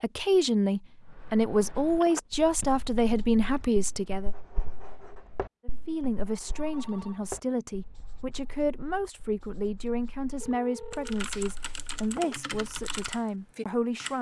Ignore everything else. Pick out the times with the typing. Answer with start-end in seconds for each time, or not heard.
10.9-14.1.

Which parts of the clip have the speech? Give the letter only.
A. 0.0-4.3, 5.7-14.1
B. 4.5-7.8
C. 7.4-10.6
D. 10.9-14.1
A.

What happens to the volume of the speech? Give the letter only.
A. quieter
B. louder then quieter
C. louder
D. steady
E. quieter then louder
A.